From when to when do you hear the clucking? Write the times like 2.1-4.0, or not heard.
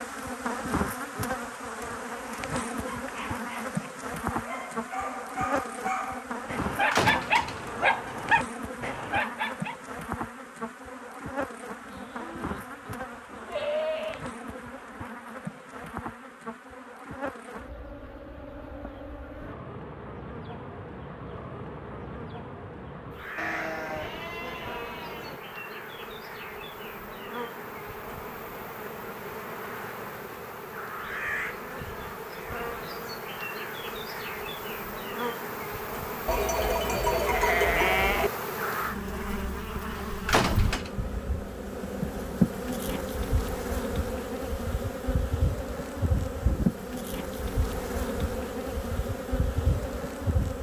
not heard.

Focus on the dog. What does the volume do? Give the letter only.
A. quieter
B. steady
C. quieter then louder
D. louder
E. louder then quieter
D.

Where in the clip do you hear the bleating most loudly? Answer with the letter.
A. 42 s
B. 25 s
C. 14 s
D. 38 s
D.